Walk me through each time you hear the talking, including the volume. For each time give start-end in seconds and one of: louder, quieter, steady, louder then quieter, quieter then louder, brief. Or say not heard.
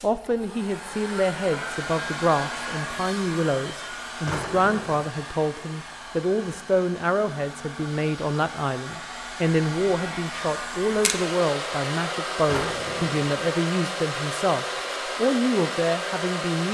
0.0-16.6 steady.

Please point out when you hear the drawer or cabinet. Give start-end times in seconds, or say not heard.
4.2-5.0, 12.4-13.2.